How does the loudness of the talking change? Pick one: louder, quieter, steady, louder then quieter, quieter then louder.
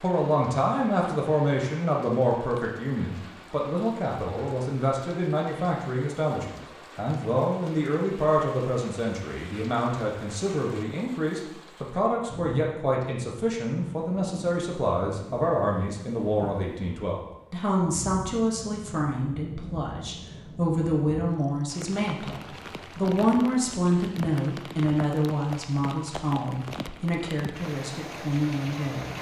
steady.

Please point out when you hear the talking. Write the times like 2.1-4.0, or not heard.
0.0-29.1.